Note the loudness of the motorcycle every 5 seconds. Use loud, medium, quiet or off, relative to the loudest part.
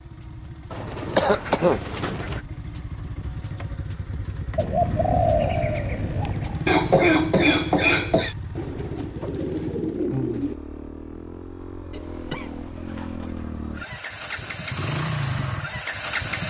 medium, medium, medium, loud.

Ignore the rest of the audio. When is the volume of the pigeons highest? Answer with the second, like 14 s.
5 s.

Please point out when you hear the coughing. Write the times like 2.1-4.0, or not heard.
1.1-1.8, 6.7-8.3, 11.9-12.8.